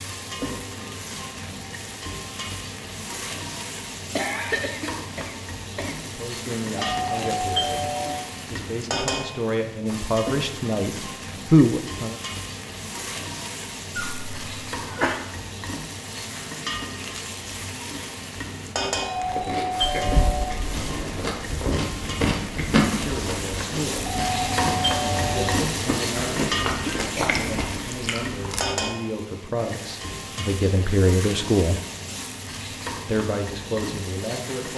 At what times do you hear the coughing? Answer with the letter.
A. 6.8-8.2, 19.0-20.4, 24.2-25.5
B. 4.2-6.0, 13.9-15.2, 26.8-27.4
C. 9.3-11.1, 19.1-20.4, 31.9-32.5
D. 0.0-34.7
B.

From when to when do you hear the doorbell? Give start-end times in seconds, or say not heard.
6.8-8.2, 19.0-20.4, 24.2-25.5.